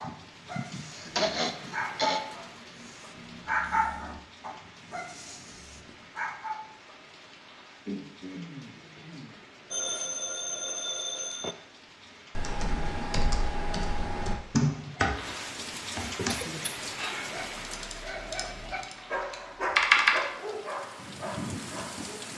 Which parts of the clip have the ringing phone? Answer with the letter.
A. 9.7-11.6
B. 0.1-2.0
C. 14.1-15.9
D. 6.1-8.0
A.